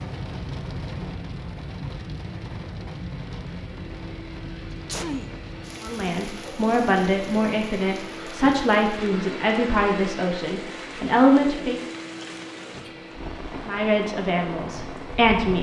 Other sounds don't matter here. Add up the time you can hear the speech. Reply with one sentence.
The speech can be heard for 8 seconds in total.